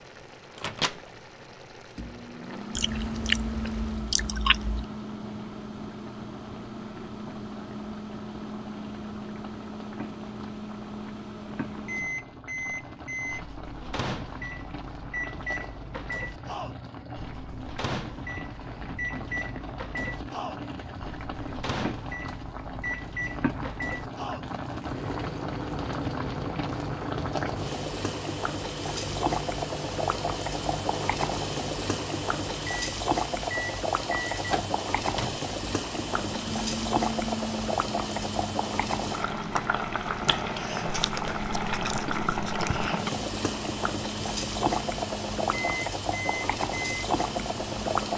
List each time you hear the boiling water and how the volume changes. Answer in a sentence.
You can hear the boiling water from 0.0 to 48.1 s, getting louder.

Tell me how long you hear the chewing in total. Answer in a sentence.
The chewing can be heard for 4 seconds in total.